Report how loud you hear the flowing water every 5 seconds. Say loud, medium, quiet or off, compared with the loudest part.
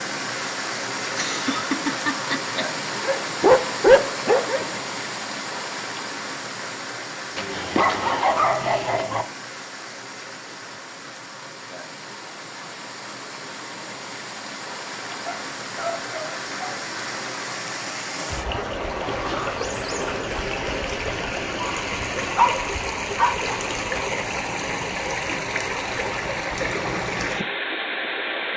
loud, medium, medium, loud, loud, loud.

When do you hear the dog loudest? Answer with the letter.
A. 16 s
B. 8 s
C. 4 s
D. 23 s
C.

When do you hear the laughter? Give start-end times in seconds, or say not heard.
1.1-2.6.